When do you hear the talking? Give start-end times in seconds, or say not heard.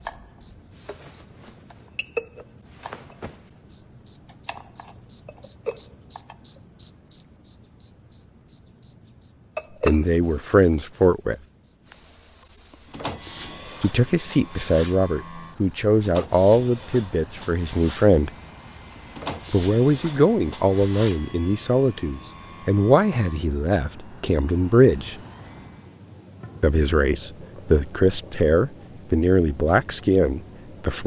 9.8-11.3, 13.8-18.3, 19.5-25.1, 26.6-31.0.